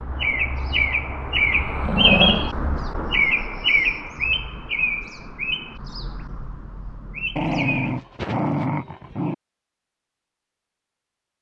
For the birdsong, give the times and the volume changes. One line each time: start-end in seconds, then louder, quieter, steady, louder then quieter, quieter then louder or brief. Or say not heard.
0.0-7.8 quieter.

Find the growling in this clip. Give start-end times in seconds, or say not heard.
1.9-2.5, 7.3-9.3.